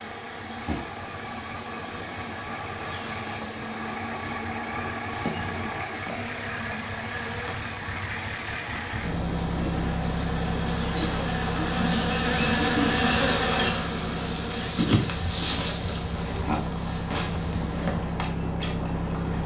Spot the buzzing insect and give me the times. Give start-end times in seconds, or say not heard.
0.0-19.4.